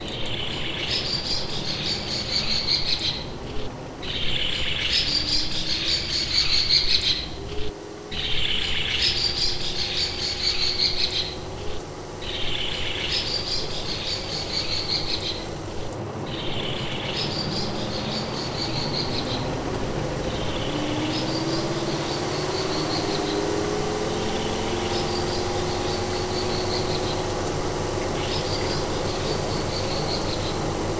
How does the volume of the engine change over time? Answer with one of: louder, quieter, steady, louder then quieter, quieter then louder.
louder.